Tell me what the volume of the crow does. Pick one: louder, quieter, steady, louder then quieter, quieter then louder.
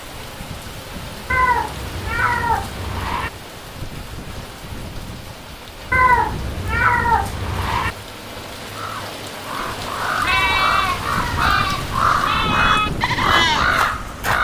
louder.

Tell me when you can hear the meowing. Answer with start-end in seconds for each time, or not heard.
1.3-3.3, 5.9-8.0, 10.2-11.6.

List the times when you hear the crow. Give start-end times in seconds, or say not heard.
8.8-14.3.